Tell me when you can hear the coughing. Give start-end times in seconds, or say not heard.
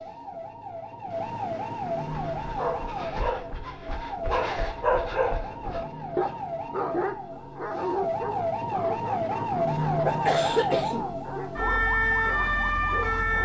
9.7-11.2.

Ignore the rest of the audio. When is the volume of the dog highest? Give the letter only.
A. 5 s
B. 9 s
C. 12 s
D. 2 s
A.